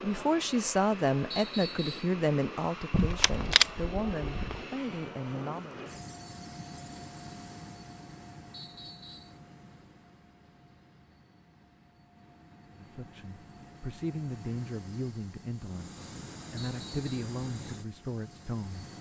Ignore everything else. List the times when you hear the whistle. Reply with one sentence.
You can hear the whistle from 1.3 to 2.1 s, from 8.5 to 9.3 s and from 16.6 to 17.1 s.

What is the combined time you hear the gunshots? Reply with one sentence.
The gunshots can be heard for 2 seconds in total.